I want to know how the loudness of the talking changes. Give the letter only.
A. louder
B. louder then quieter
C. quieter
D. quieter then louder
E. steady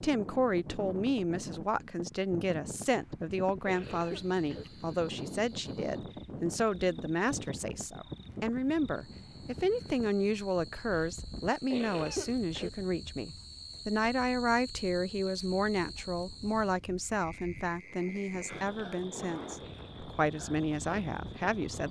E.